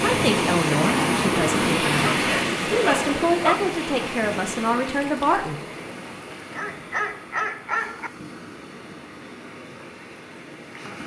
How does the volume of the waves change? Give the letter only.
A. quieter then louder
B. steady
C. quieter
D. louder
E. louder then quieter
C.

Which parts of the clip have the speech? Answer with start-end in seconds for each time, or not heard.
0.0-5.6.